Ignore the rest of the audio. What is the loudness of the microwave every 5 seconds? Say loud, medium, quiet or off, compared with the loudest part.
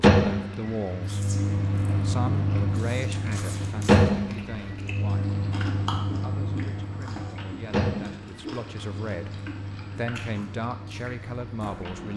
loud, medium, quiet.